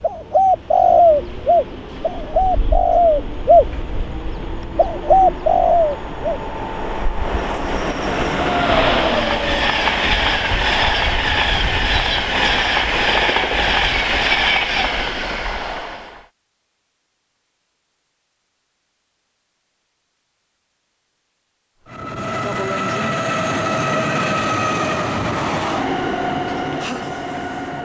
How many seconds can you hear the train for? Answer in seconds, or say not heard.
22 s.